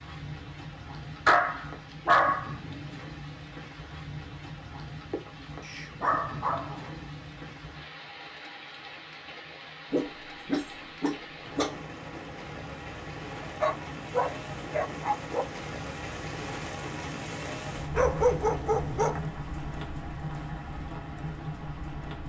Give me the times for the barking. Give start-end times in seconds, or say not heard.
1.2-2.5, 5.7-6.9, 9.9-11.8, 13.4-15.4, 17.9-19.2.